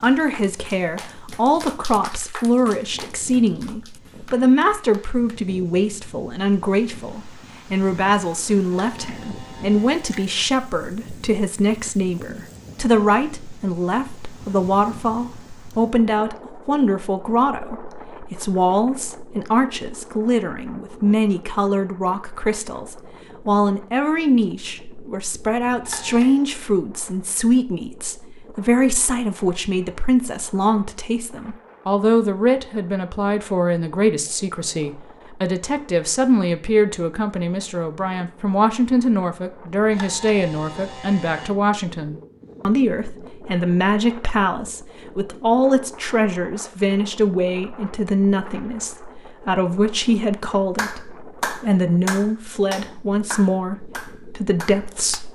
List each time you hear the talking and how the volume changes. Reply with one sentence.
The talking can be heard from 0.0 to 55.3 s, at a steady volume.